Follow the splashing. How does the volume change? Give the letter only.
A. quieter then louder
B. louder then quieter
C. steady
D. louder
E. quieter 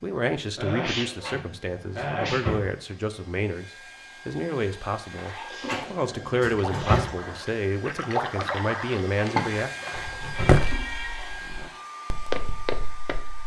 B.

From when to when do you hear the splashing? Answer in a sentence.
The splashing can be heard from 5.1 to 10.9 s.